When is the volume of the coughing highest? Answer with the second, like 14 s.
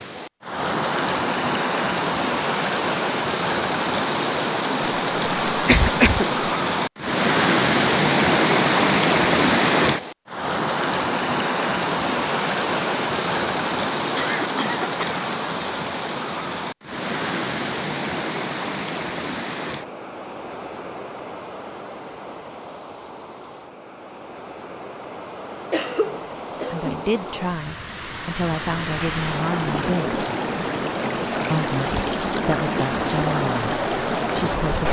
6 s.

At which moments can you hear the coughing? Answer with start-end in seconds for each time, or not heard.
5.5-6.5, 14.1-15.2, 25.5-27.1.